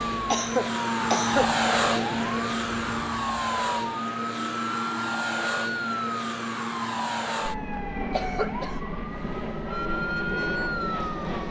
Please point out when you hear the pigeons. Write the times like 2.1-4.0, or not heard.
9.8-11.4.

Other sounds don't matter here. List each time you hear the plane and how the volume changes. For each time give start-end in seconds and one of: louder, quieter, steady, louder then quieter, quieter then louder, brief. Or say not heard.
0.0-11.4 quieter.